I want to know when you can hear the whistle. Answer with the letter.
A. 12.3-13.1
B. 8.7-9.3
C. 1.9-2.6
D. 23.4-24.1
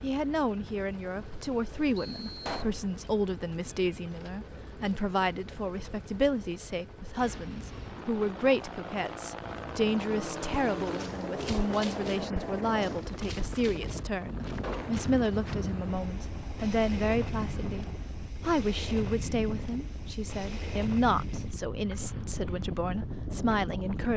C.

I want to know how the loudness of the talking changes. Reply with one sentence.
The volume of the talking stays about the same.